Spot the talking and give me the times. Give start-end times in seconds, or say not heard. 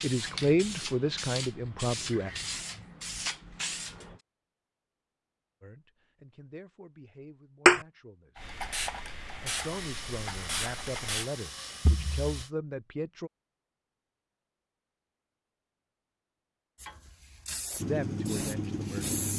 0.0-2.3, 5.6-8.6, 9.4-13.3, 17.9-19.1.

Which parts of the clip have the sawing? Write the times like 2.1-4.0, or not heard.
9.6-12.5.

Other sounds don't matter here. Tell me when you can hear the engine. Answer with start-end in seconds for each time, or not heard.
17.8-19.3.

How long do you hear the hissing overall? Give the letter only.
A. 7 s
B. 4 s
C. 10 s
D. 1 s
C.